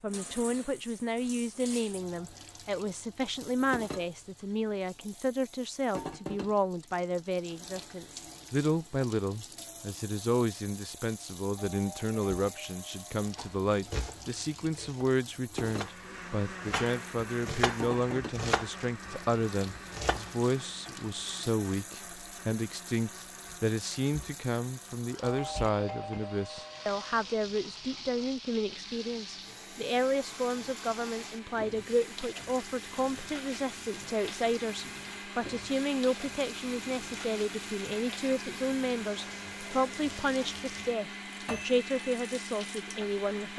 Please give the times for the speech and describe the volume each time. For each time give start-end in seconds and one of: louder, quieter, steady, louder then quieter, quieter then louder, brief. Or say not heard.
0.0-43.5 steady.